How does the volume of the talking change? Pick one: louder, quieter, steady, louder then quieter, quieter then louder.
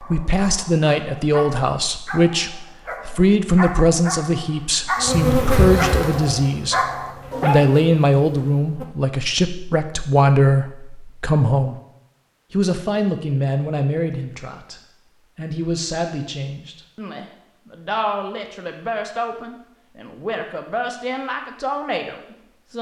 quieter.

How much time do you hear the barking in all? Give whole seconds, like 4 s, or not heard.
8 s.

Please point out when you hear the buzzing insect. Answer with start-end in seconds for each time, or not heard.
5.0-8.8.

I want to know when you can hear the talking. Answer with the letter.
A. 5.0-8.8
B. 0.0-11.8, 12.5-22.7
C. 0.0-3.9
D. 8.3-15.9
B.